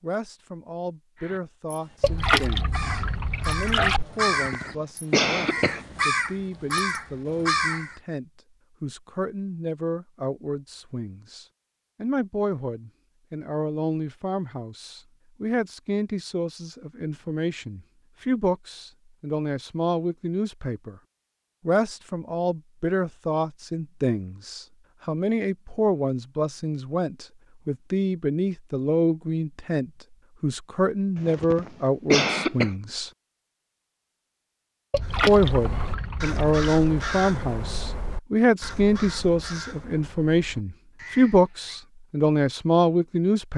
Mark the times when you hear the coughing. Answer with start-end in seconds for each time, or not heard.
4.2-5.8, 31.1-32.7.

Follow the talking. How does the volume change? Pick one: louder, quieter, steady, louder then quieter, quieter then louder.
louder.